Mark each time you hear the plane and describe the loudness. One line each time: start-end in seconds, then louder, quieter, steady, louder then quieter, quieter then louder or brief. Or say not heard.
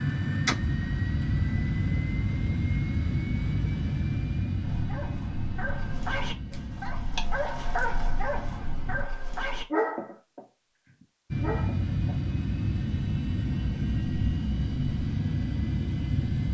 0.0-9.1 quieter
11.3-16.4 steady.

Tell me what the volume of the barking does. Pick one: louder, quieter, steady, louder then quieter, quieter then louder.
louder then quieter.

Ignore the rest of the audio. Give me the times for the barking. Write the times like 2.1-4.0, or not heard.
4.6-12.2.